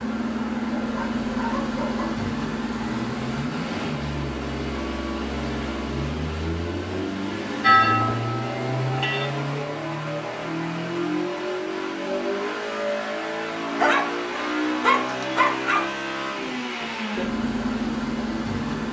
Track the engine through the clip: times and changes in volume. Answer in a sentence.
The engine can be heard from 0.0 to 18.8 s, at a steady volume.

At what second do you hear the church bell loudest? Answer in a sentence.
The volume of the church bell peaks at 8 seconds.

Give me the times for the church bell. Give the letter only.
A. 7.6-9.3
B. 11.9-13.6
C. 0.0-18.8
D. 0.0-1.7
A.